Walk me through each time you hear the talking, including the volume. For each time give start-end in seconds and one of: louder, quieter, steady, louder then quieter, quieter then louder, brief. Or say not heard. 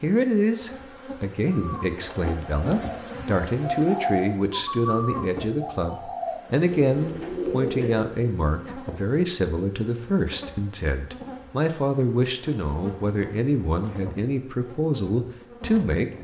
0.0-16.1 steady.